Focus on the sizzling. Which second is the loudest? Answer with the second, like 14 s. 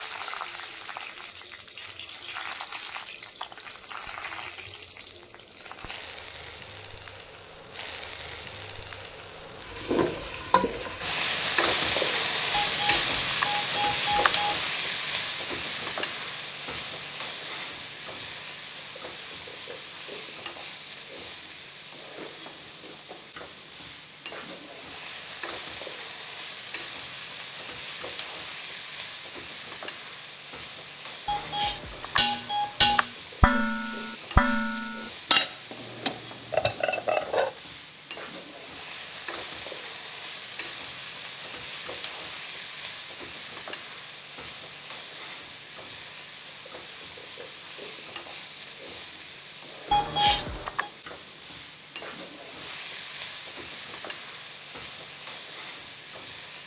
12 s.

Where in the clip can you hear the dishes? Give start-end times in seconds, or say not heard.
32.1-37.5.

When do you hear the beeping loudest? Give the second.
50 s.